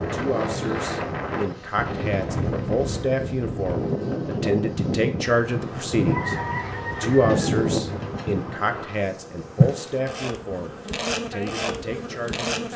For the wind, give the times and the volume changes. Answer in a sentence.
The wind can be heard from 0.0 to 12.7 s, getting quieter.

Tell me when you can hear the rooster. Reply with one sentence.
The rooster can be heard from 6.0 to 8.0 s.